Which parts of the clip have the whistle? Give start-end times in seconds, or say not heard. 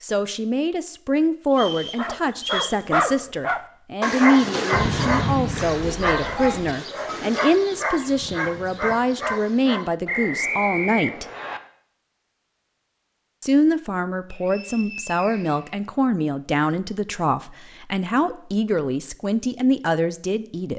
1.5-2.8, 10.1-11.6, 14.3-15.8.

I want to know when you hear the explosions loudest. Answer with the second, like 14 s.
5 s.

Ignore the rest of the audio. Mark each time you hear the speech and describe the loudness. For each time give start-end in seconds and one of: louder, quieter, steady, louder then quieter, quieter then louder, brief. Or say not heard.
0.0-11.2 steady
13.4-20.7 steady.